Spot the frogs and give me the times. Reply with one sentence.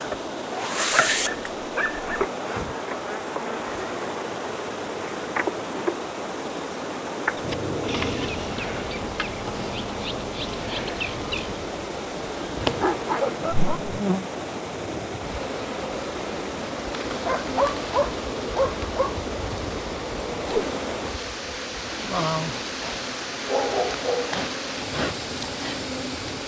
The frogs can't be heard in this clip.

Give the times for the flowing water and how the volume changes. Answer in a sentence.
You can hear the flowing water from 0.0 to 26.4 s, at a steady volume.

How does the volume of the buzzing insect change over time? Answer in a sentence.
The volume of the buzzing insect stays about the same.